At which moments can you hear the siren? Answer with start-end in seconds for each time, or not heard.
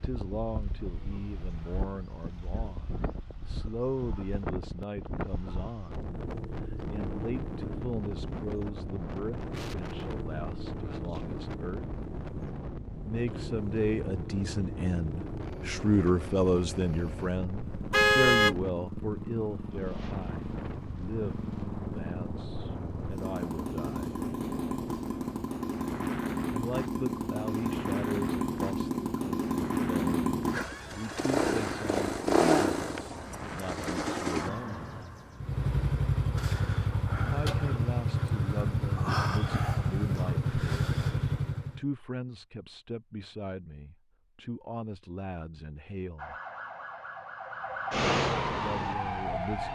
46.1-49.6.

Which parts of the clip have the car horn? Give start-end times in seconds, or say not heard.
17.9-18.6.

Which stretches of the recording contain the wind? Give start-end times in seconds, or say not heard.
0.0-33.9.